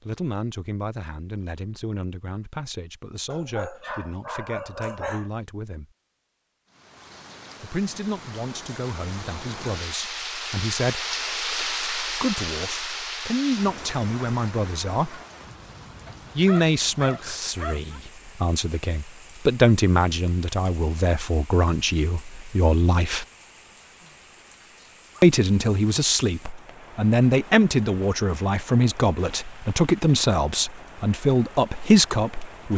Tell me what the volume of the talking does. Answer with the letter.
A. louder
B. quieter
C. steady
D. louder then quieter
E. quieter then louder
A.